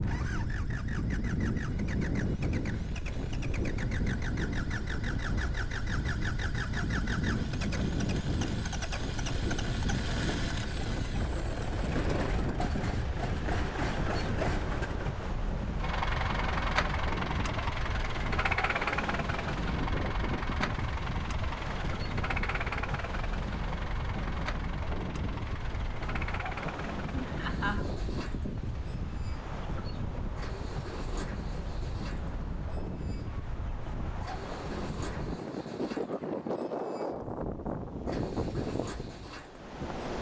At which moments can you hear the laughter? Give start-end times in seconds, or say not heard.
26.6-27.9.